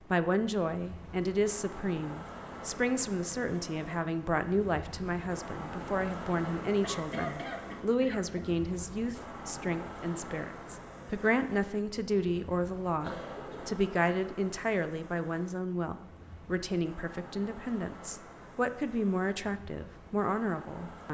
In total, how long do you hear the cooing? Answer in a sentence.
You can't hear the cooing here.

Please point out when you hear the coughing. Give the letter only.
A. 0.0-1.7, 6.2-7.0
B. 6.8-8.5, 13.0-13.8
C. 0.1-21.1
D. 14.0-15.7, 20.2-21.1
B.